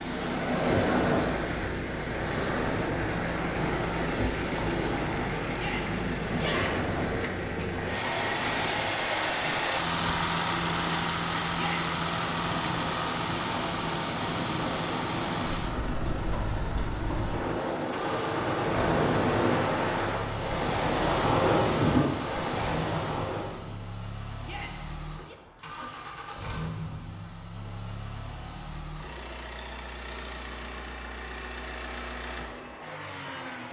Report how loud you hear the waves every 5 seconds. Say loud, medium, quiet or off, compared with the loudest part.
loud, medium, medium, loud, loud, off, off.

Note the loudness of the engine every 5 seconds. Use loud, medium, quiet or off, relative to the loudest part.
medium, loud, loud, medium, medium, medium, medium.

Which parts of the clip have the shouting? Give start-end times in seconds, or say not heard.
5.5-6.8, 11.5-11.9, 24.4-25.4.